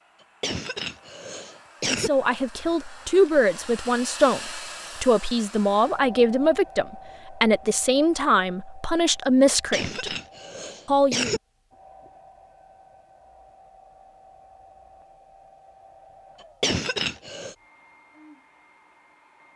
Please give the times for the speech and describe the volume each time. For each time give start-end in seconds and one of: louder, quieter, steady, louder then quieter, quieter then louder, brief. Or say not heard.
1.9-10.2 steady
10.8-11.3 brief.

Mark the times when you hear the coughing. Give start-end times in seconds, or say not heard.
0.4-2.1, 9.7-11.4, 16.4-17.6.